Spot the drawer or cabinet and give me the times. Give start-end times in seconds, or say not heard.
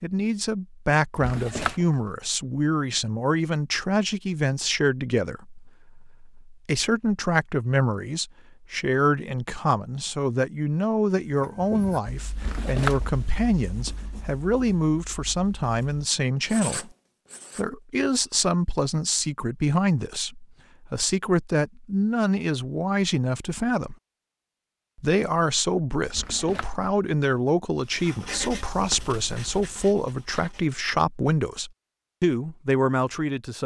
1.1-2.0, 12.3-13.2, 26.1-26.9.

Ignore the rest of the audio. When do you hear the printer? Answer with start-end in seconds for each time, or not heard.
not heard.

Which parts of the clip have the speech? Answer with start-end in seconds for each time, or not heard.
0.0-16.9, 17.6-23.9, 24.9-33.6.